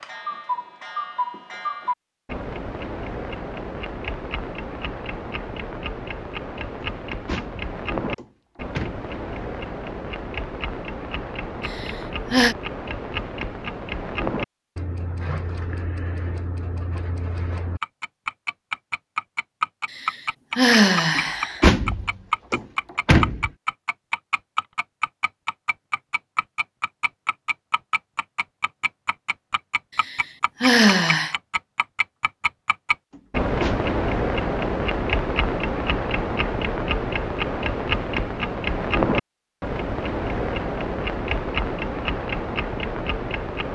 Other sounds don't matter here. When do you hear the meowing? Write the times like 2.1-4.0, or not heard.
not heard.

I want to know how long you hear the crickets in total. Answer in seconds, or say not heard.
not heard.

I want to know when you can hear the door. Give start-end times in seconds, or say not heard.
6.8-9.1, 21.1-23.5, 33.1-33.9.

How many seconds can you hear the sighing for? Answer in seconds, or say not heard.
4 s.